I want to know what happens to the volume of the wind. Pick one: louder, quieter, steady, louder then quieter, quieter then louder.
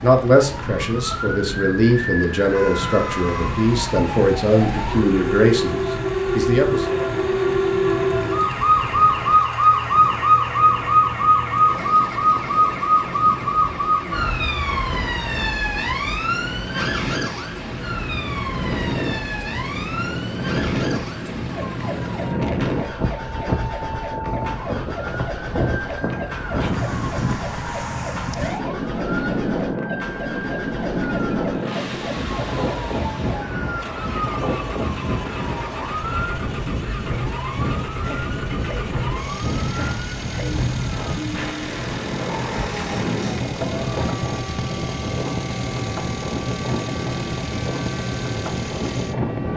louder.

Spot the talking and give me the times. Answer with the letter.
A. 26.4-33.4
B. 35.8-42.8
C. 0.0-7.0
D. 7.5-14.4
C.